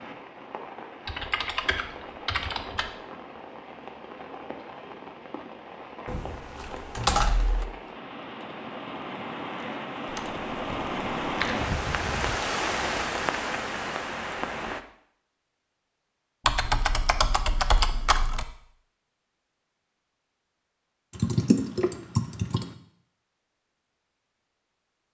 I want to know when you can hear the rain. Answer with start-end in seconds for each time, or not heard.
0.0-14.8.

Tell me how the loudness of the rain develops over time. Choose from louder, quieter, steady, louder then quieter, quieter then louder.
louder.